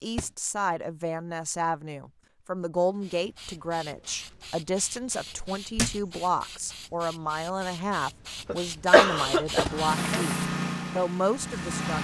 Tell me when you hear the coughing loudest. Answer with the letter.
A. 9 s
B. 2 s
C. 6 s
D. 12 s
A.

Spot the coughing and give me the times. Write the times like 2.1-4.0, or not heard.
8.4-10.3.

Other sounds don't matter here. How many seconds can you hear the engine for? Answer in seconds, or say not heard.
2 s.